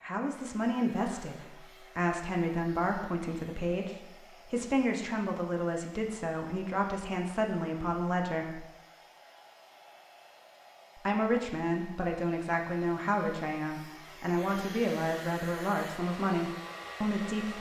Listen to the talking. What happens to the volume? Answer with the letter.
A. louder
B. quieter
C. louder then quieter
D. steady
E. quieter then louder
D.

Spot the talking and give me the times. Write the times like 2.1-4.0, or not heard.
0.0-8.7, 10.9-17.5.